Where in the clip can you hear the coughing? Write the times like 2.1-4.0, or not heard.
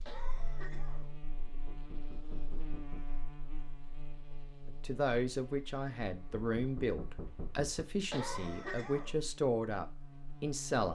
0.1-1.1, 8.1-9.2.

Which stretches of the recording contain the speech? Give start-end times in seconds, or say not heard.
4.7-10.9.